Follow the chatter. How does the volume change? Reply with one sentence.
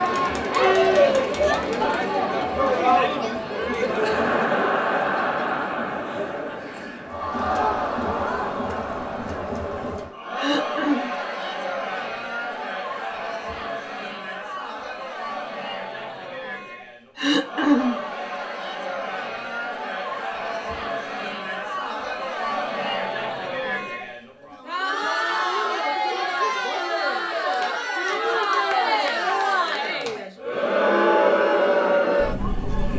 The volume of the chatter goes down, then up.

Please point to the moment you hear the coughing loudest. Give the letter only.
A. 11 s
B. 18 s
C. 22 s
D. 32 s
B.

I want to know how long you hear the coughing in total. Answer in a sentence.
The coughing can be heard for 2 seconds in total.